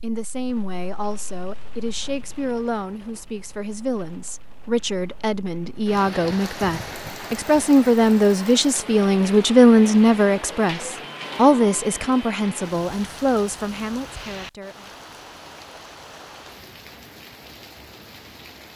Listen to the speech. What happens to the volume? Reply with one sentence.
The loudness of the speech goes up, then down.